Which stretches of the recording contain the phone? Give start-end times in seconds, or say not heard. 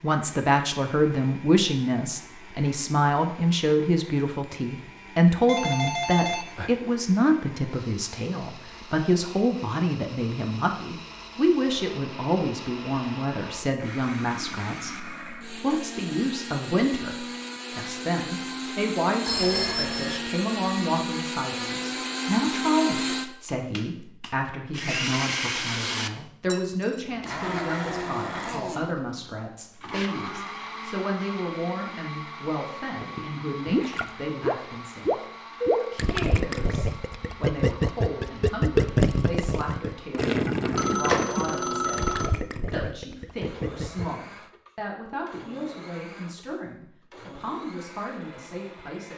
5.5-6.8, 19.2-20.2, 40.8-42.3.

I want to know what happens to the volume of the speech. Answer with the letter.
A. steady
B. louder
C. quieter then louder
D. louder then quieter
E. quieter
E.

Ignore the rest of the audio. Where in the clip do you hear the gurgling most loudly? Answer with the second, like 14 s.
39 s.